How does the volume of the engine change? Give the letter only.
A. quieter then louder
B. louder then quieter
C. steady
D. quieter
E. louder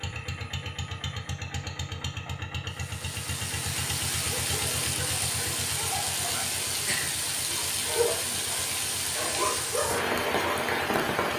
D.